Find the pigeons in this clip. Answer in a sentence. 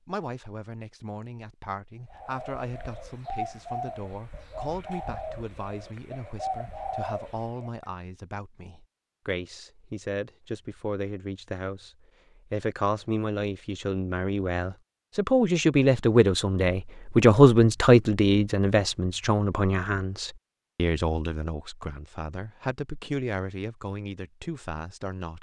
You can hear the pigeons from 2.0 to 7.7 s.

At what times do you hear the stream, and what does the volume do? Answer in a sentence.
You can't hear the stream here.